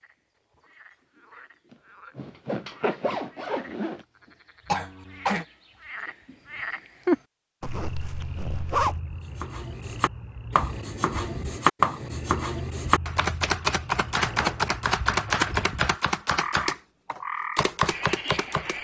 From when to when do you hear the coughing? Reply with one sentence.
You can hear the coughing from 4.7 to 5.5 s.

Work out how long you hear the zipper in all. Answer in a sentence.
You can hear the zipper for 5 seconds altogether.